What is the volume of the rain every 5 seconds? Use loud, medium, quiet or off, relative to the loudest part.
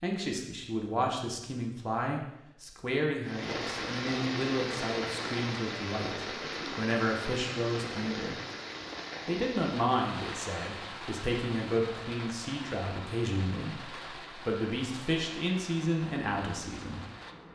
loud, loud, medium, medium.